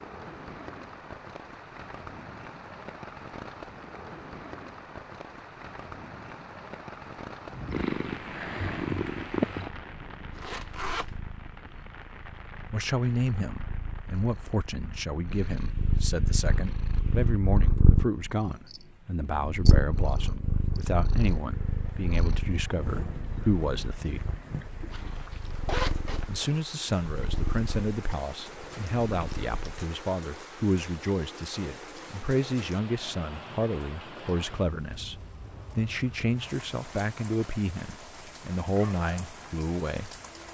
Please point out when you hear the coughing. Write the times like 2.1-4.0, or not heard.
not heard.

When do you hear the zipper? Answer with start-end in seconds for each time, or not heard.
10.3-11.1, 24.9-26.6.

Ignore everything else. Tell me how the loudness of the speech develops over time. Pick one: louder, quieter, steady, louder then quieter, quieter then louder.
steady.